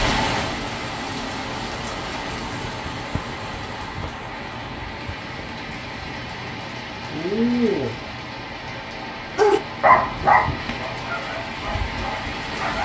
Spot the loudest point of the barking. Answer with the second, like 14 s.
10 s.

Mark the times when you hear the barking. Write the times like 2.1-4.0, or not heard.
9.3-12.8.